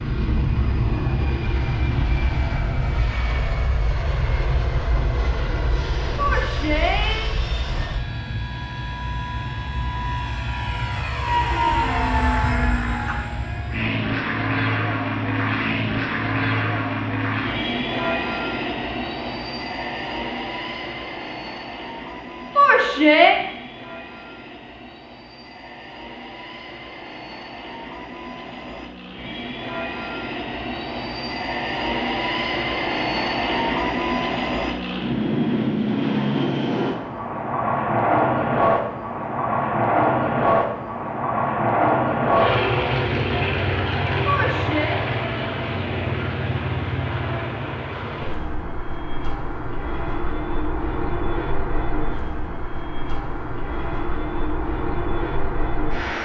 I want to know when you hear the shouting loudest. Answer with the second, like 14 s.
23 s.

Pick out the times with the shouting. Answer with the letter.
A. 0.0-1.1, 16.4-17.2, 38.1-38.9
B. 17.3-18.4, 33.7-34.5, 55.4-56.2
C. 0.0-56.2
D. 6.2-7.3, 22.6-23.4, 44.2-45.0
D.